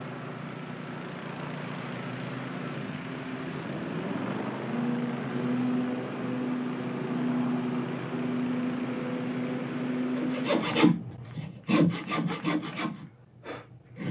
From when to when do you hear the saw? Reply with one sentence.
You can hear the saw from 10.2 to 14.0 s.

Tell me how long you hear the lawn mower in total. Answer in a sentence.
You can hear the lawn mower for 11 seconds altogether.